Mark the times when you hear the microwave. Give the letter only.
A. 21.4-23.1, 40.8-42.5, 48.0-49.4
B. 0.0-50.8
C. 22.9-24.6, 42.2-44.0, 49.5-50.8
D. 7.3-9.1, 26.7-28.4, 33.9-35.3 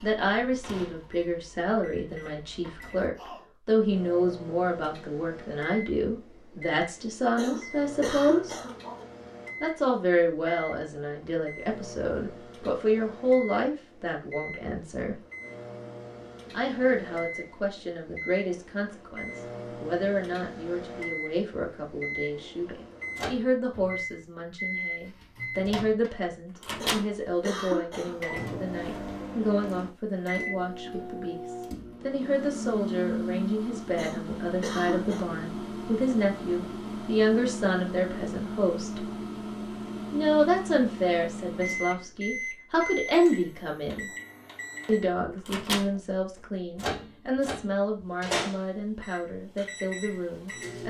B.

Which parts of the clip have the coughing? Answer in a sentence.
You can hear the coughing from 7.3 to 9.1 s, from 26.7 to 28.4 s and from 33.9 to 35.3 s.